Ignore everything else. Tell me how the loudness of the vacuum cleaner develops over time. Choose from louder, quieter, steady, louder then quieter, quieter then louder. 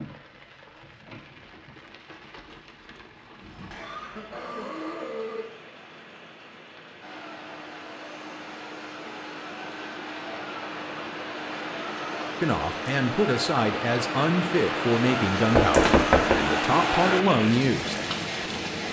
louder.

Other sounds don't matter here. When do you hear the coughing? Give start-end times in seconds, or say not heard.
3.4-5.5.